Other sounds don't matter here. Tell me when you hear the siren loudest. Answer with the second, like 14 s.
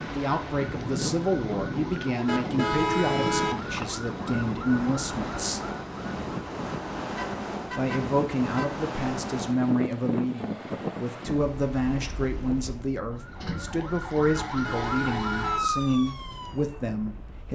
15 s.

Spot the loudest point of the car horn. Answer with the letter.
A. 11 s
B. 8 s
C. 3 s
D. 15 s
C.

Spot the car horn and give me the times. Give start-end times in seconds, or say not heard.
2.2-3.8, 7.2-8.8, 14.3-15.7.